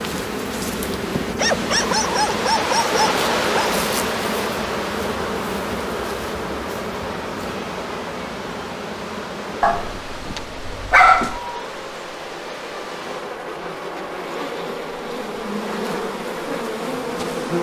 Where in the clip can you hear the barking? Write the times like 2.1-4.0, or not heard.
1.4-3.7, 9.6-11.4.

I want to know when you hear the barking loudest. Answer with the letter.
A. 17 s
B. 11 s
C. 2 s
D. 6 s
B.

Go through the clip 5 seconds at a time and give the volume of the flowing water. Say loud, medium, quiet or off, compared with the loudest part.
loud, medium, medium, off.